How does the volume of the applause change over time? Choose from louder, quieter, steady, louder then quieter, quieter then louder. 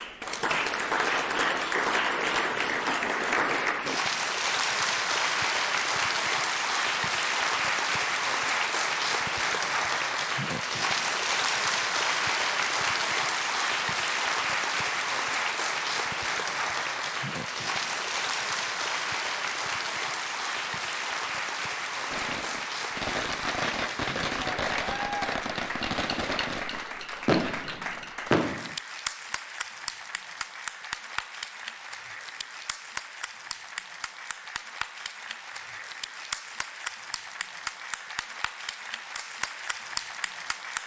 quieter.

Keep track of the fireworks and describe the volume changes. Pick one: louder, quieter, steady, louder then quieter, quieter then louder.
louder.